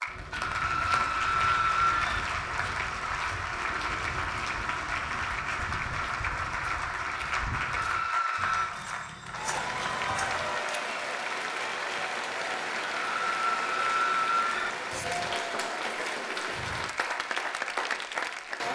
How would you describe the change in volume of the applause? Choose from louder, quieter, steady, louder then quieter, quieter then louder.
steady.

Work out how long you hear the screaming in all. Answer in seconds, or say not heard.
4 s.